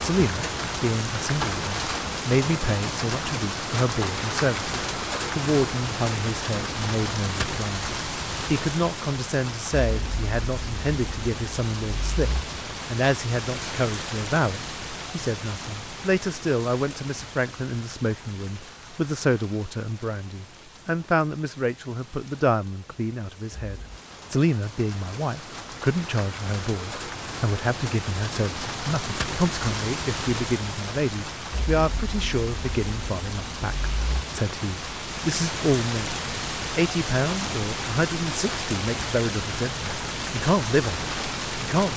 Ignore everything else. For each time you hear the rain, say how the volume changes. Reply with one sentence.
The rain can be heard from 0.0 to 41.9 s, getting quieter then louder.